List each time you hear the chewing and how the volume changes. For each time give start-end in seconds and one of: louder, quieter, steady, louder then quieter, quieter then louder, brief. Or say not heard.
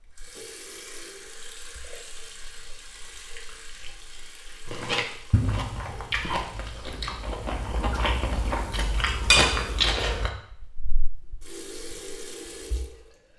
4.7-10.3 louder.